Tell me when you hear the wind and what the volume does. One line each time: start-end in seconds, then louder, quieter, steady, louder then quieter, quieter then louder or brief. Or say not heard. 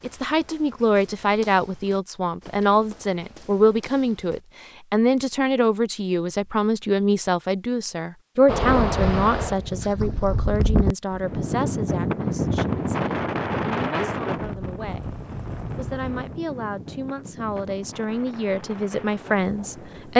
8.4-20.1 quieter.